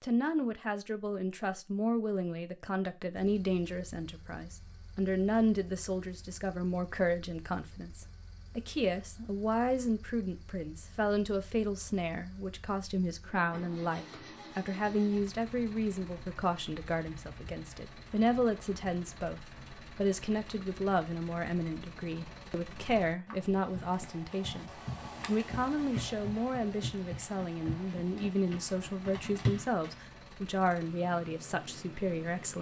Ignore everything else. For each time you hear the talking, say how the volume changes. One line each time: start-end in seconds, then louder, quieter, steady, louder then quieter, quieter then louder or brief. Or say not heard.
0.0-32.5 steady.